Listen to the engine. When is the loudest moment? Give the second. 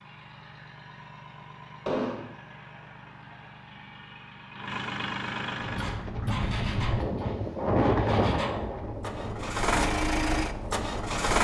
10 s.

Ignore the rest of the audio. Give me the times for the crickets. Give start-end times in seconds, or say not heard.
not heard.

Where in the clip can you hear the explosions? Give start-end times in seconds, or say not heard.
1.9-2.4.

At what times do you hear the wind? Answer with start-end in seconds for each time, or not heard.
5.5-11.3.